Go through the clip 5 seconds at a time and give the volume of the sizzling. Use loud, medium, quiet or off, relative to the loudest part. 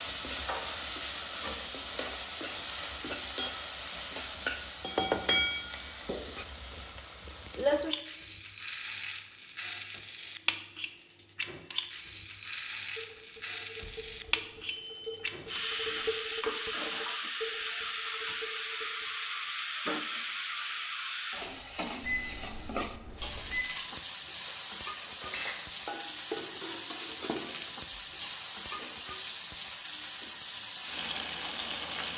loud, loud, loud, loud, loud, medium, loud.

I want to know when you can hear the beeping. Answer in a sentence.
The beeping can be heard from 2.1 to 3.0 s, from 13.8 to 16.4 s and from 22.0 to 23.6 s.